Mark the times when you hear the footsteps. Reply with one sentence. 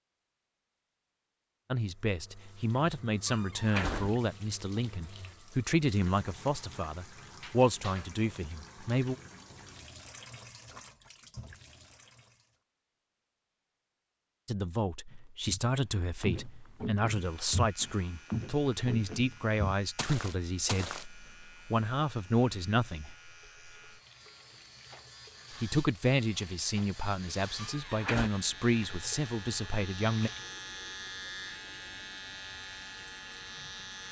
You can hear the footsteps from 15.1 to 21.1 s.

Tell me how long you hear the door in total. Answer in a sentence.
You can hear the door for 2 seconds altogether.